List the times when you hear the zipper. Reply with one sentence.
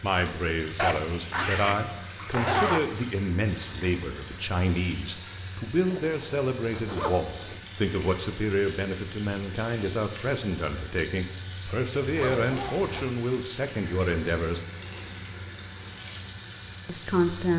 You can hear the zipper from 0.8 to 2.8 s, from 5.8 to 7.6 s and from 12.0 to 13.2 s.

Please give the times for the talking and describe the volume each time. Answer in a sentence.
You can hear the talking from 0.0 to 14.6 s, at a steady volume; and briefly from 16.9 to 17.5 s.